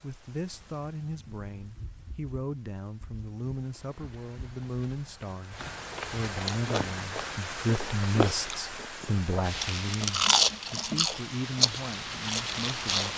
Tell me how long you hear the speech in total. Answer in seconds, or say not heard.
13 s.